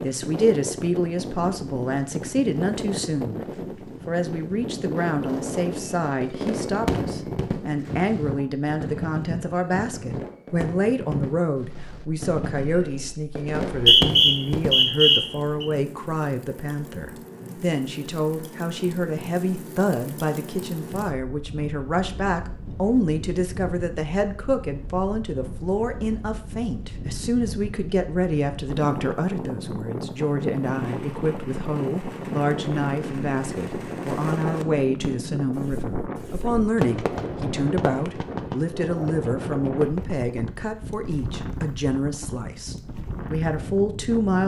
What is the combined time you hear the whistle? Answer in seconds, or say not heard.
2 s.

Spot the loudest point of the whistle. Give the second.
14 s.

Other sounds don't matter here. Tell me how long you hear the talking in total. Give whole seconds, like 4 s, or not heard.
44 s.